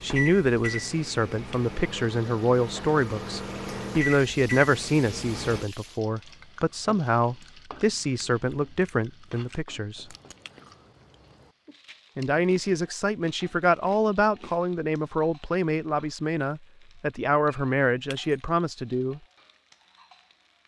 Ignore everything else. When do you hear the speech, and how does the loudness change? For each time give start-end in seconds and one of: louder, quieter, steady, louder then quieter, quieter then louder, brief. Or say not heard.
0.0-10.1 steady
12.2-19.2 steady.